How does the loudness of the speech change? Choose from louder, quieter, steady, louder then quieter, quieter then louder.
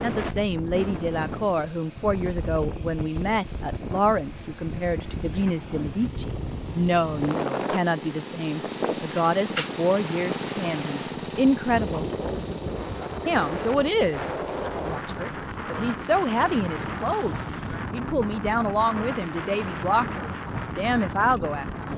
steady.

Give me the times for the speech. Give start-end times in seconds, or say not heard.
0.0-12.1, 13.2-21.6.